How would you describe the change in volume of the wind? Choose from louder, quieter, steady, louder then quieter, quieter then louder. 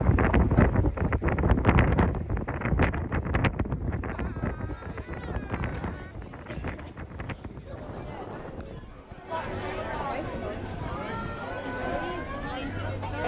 quieter.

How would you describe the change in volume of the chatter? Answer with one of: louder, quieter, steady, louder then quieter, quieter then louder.
louder.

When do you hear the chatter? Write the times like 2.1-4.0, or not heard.
4.7-13.2.